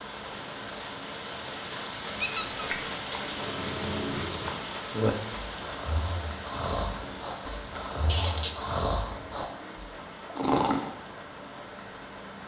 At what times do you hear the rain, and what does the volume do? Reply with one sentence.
You can hear the rain from 0.0 to 12.4 s, getting quieter.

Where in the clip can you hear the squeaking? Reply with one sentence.
The squeaking can be heard from 2.2 to 2.6 s and from 8.1 to 8.6 s.